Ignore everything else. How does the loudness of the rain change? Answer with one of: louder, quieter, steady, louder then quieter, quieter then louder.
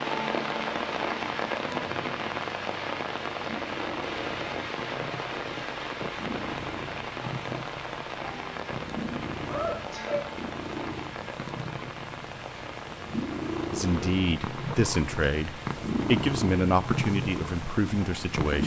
quieter.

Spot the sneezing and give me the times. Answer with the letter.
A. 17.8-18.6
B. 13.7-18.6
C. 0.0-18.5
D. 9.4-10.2
D.